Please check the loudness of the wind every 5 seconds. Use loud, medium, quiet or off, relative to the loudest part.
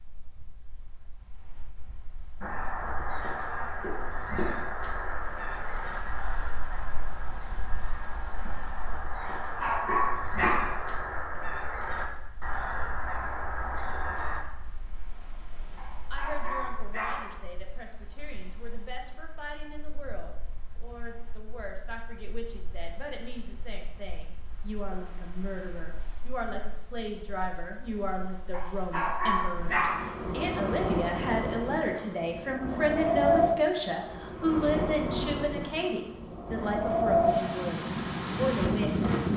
quiet, quiet, quiet, quiet, quiet, quiet, loud, loud.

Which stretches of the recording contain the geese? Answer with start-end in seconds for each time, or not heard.
2.4-14.4.